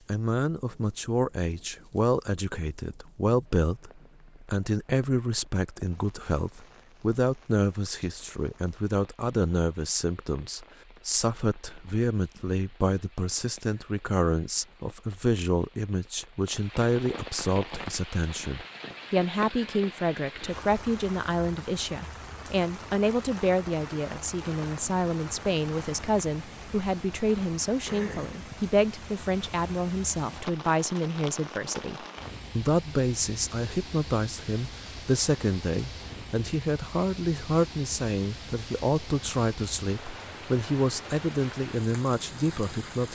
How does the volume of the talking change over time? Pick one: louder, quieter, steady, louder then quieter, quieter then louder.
steady.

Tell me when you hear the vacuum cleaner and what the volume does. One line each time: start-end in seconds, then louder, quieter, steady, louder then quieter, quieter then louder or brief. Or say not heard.
not heard.